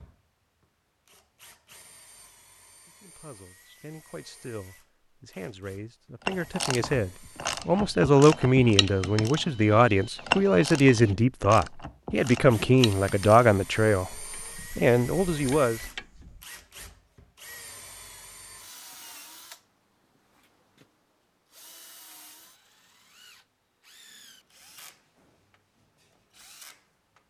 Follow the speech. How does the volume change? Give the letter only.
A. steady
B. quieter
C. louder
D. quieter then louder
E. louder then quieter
C.